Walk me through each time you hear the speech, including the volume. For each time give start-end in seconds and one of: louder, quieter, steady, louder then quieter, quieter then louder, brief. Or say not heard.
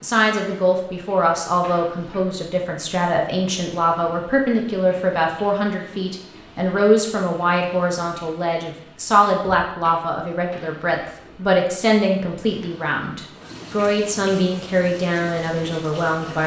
0.0-16.4 steady.